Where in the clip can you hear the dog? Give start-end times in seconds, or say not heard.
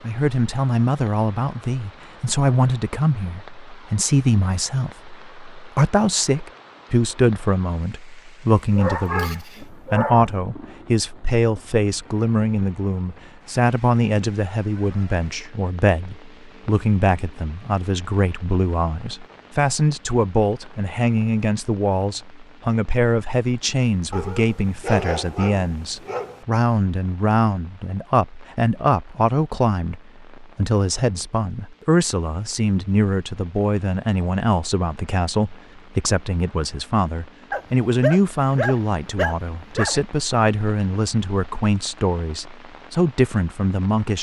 8.8-10.3, 24.1-26.4, 37.5-40.0.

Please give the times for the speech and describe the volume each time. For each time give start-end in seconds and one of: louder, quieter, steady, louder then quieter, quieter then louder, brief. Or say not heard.
0.0-44.1 steady.